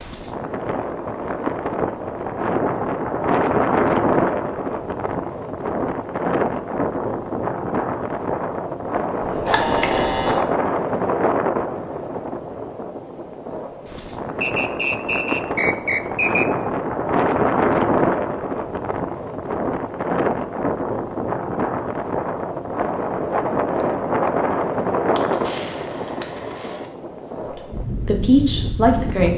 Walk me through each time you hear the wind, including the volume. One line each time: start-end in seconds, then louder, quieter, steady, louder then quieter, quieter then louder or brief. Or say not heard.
0.0-29.3 steady.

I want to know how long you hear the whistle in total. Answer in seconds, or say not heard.
2 s.